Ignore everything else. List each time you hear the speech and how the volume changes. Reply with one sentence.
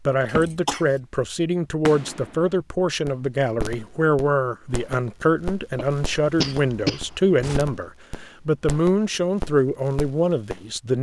You can hear the speech from 0.1 to 10.9 s, at a steady volume.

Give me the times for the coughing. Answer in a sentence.
You can hear the coughing from 0.2 to 0.8 s and from 5.8 to 7.6 s.